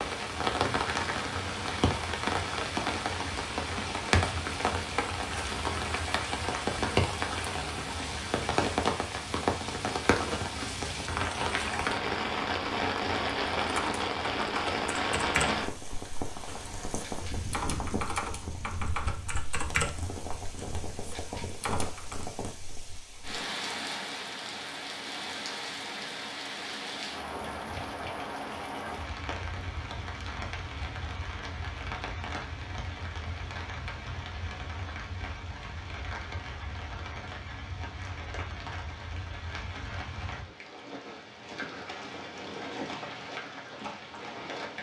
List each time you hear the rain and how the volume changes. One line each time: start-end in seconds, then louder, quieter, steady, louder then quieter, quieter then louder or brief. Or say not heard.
0.0-44.7 quieter.